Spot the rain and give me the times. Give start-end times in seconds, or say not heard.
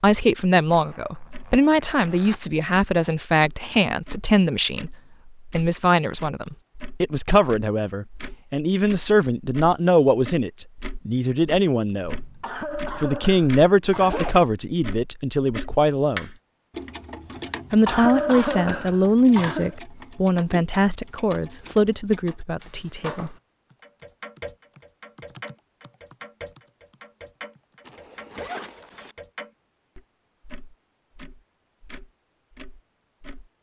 not heard.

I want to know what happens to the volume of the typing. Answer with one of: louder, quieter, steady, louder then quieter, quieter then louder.
louder then quieter.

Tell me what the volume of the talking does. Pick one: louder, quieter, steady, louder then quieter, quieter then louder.
steady.